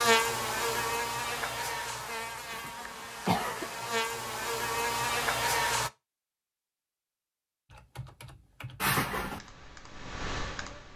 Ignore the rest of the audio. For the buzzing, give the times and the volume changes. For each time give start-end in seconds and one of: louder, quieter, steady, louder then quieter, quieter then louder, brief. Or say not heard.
0.0-5.9 quieter then louder.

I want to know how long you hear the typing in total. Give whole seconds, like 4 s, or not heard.
3 s.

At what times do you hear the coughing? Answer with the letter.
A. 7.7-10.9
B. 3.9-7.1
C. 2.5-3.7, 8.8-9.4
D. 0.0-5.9
C.